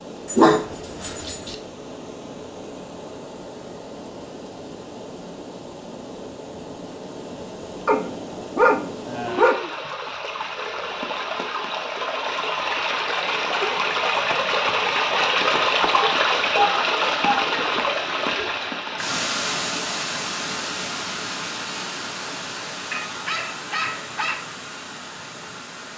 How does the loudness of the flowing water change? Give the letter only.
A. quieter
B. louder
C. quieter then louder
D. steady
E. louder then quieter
E.